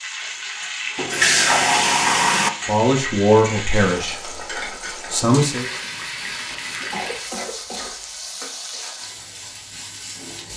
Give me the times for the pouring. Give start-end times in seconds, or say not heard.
0.9-2.5, 5.5-7.3.